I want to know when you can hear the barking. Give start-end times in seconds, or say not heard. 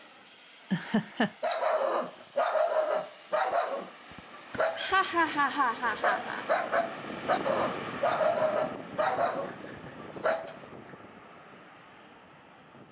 1.4-10.6.